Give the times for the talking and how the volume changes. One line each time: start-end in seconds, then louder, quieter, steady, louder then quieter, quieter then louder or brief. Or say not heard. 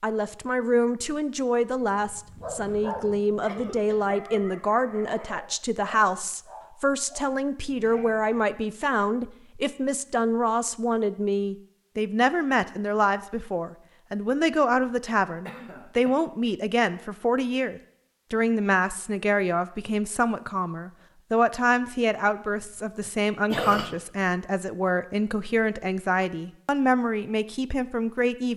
0.0-28.5 steady.